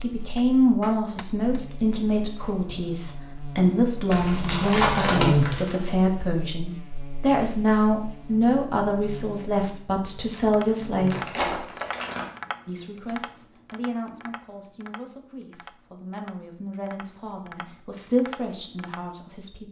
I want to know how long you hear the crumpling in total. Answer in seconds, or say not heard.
3 s.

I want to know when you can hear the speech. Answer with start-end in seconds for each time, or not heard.
0.0-11.2, 12.7-19.6.